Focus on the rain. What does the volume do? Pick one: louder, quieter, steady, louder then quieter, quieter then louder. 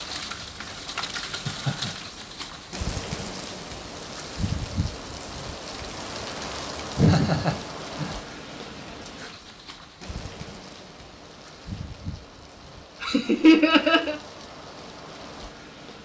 quieter.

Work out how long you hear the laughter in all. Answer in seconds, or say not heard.
3 s.